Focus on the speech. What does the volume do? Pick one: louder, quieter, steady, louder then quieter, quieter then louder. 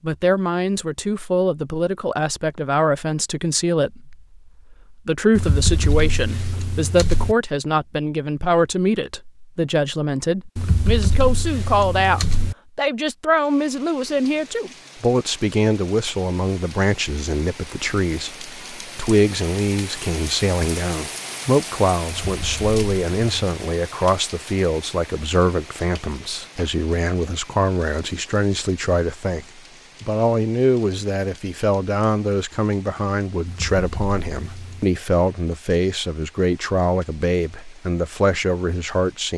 steady.